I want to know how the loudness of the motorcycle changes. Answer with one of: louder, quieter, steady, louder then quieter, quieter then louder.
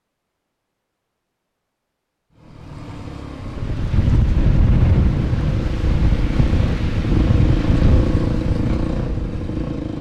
louder.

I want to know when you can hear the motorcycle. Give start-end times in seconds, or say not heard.
2.4-9.9.